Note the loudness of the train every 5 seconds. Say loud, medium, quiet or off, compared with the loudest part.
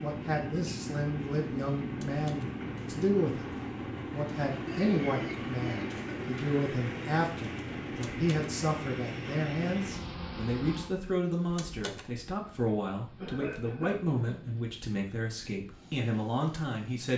loud, loud, medium, quiet.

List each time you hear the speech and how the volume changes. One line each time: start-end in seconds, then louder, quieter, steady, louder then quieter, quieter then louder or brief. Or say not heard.
0.0-17.1 steady.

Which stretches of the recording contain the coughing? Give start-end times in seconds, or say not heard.
4.5-6.3, 13.2-14.5.